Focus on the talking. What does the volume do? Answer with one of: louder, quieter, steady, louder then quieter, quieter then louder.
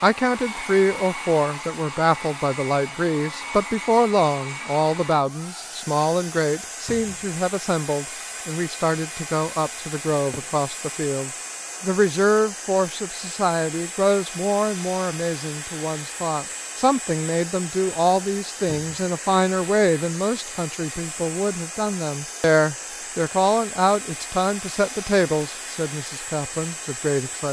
steady.